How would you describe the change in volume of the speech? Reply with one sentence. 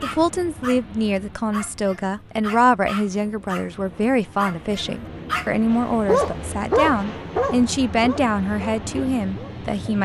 The volume of the speech stays about the same.